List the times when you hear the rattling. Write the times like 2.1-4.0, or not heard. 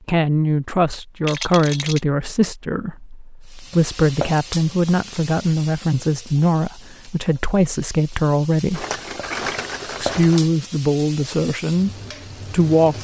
1.2-2.0, 8.7-10.4.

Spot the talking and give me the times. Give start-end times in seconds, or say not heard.
0.1-8.8, 10.0-11.9, 12.5-12.9.